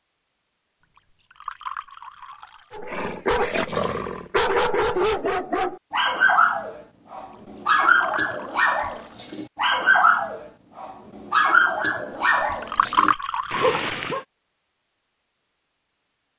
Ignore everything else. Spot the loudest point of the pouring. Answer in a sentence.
The loudest moment of the pouring is at 13 seconds.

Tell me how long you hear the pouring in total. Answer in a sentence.
You can hear the pouring for 5 seconds altogether.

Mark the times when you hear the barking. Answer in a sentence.
The barking can be heard from 2.7 to 14.2 s.